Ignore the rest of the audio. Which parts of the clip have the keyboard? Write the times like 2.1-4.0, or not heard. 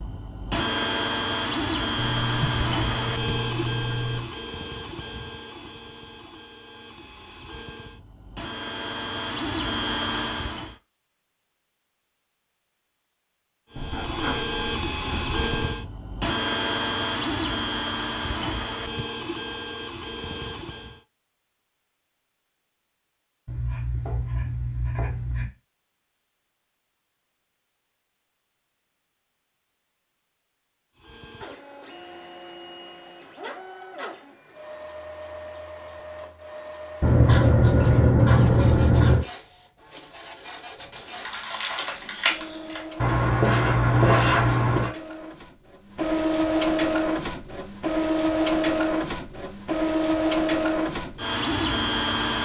not heard.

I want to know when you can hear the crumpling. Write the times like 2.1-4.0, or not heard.
41.0-42.9.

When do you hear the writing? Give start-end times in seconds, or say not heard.
1.9-4.3, 13.8-15.8, 23.4-25.5, 37.0-39.2, 43.0-44.9.